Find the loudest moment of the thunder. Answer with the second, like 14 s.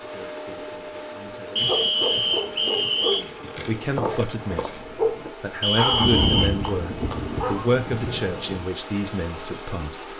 6 s.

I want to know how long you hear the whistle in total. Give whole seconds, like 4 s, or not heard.
3 s.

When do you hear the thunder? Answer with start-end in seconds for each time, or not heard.
5.9-8.7.